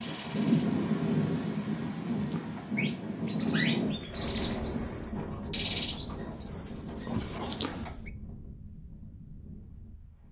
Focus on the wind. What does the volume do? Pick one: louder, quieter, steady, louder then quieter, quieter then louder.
quieter.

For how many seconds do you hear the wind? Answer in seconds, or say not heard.
10 s.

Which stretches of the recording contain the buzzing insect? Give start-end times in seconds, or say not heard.
not heard.